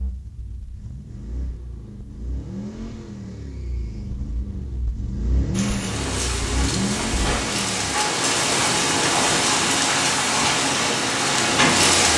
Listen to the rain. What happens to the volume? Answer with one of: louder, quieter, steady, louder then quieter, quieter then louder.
louder.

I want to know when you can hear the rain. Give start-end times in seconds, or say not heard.
5.5-12.1.